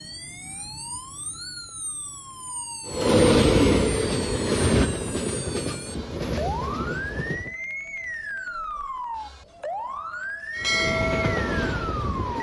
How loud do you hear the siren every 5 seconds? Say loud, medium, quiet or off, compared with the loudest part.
medium, loud, loud.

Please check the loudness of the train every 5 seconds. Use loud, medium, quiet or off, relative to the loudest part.
loud, medium, medium.